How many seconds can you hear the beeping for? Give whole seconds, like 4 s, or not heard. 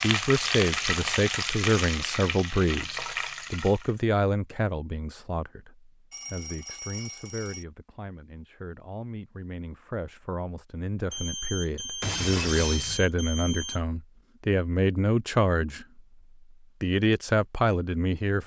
4 s.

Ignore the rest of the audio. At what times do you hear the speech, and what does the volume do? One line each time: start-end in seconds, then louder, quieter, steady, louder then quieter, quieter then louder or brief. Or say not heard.
0.0-16.0 quieter then louder
16.8-18.4 brief.